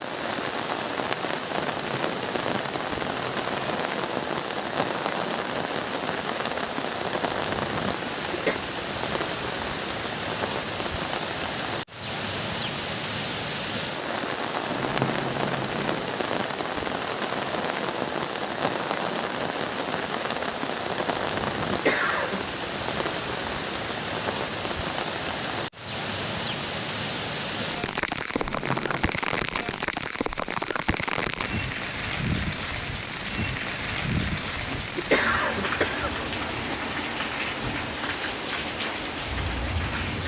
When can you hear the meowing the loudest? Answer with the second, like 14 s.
15 s.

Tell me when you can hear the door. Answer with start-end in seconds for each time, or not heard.
not heard.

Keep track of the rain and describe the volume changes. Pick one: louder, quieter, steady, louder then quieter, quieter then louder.
steady.